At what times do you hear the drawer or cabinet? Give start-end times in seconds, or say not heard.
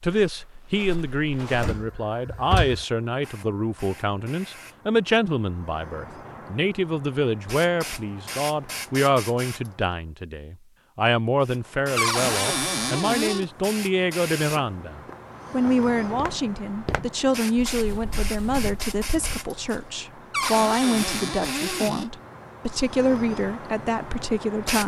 1.5-2.9, 11.9-13.4, 20.3-22.1.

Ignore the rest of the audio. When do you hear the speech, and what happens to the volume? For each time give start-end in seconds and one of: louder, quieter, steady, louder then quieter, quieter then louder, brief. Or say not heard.
0.0-24.8 steady.